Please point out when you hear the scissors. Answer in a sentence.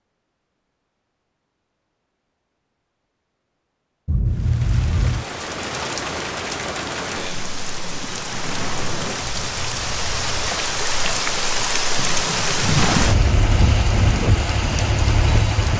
You can't hear the scissors here.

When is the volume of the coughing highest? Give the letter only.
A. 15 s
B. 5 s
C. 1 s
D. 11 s
B.